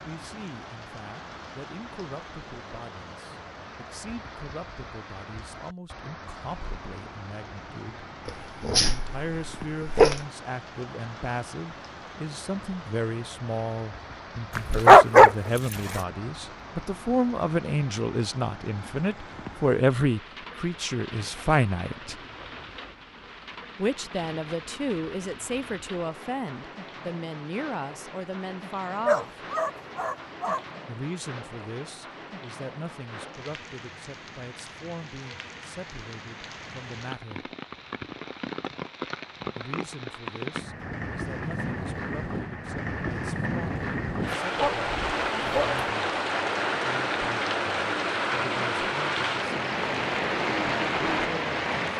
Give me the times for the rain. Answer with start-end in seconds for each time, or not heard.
0.0-51.9.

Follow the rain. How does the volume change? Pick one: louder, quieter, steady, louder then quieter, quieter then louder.
louder.